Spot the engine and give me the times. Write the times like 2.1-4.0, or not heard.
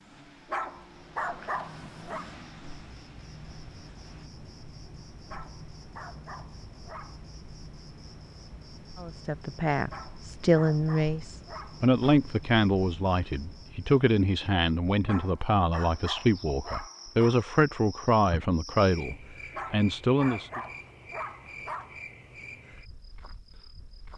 0.0-4.3.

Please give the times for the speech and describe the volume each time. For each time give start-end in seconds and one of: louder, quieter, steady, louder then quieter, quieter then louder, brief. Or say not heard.
9.0-20.6 steady.